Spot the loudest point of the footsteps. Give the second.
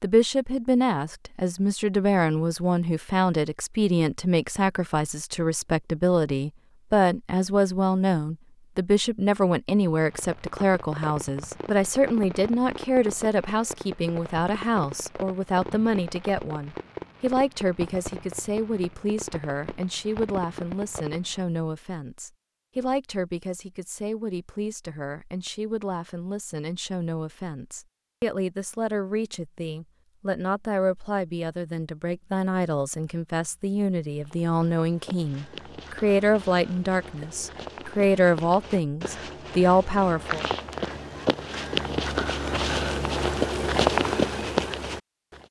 44 s.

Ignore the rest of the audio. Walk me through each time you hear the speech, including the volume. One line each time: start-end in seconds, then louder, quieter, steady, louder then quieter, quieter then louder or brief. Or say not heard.
0.0-40.5 quieter then louder.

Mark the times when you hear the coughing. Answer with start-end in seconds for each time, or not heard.
not heard.